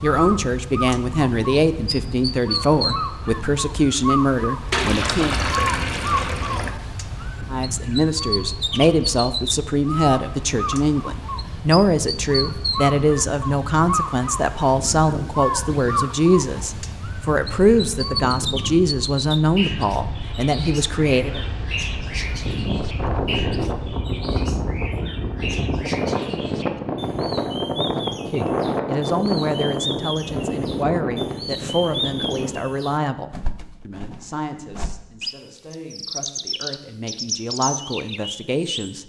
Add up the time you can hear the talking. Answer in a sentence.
The talking can be heard for 30 seconds in total.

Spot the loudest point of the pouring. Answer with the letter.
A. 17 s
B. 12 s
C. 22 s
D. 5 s
D.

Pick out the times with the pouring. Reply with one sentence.
The pouring can be heard from 4.7 to 6.8 s.